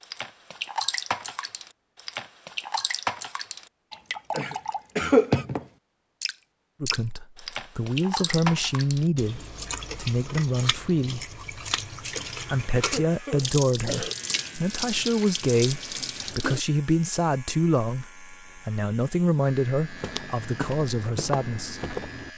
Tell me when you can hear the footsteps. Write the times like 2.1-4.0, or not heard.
19.7-22.3.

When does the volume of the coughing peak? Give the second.
5 s.